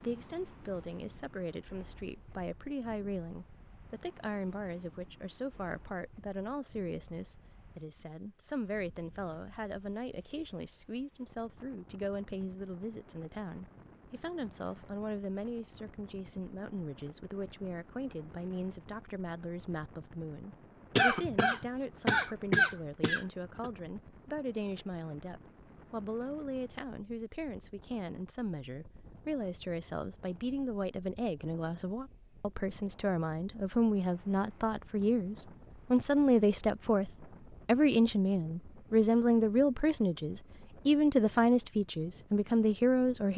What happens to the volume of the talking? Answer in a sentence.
The volume of the talking goes up.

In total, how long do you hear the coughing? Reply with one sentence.
You can hear the coughing for 3 seconds altogether.